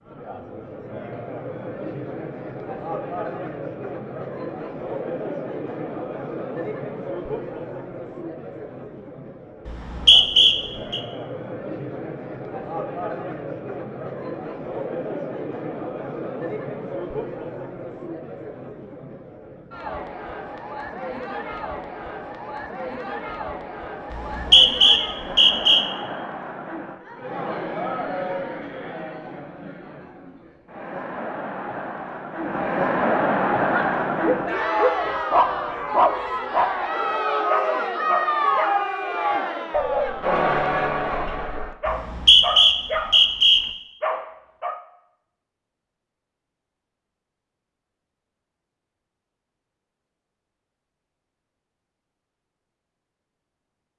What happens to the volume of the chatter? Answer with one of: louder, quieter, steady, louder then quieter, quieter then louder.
louder.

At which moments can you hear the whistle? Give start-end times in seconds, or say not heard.
9.7-11.0, 24.1-25.9, 41.9-43.6.